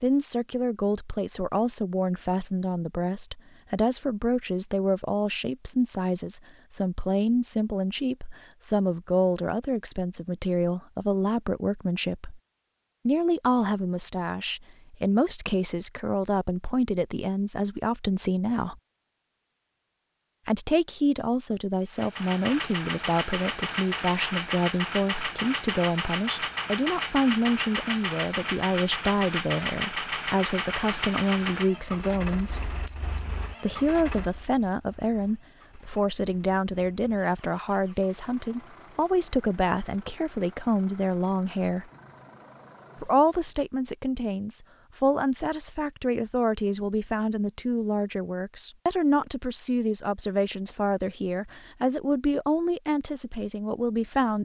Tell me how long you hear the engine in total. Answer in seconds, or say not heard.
22 s.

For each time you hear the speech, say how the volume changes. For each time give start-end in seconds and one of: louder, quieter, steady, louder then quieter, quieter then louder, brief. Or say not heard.
0.0-12.4 steady
13.1-18.8 steady
20.4-32.7 steady
33.6-41.9 steady
43.0-54.4 steady.